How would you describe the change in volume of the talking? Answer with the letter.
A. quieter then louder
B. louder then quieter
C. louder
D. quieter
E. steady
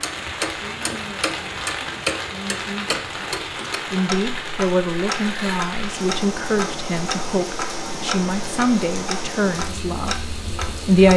C.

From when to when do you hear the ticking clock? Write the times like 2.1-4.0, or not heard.
0.0-11.1.